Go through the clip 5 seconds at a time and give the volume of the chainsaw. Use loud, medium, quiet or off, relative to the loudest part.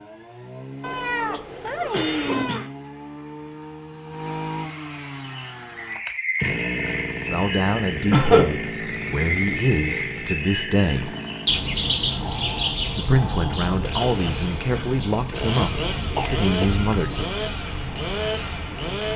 medium, loud, medium, loud.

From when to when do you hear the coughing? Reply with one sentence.
You can hear the coughing from 1.9 to 2.7 s, from 8.1 to 8.6 s and from 16.1 to 16.8 s.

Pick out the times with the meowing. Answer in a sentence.
You can hear the meowing from 0.8 to 2.6 s and from 15.6 to 17.4 s.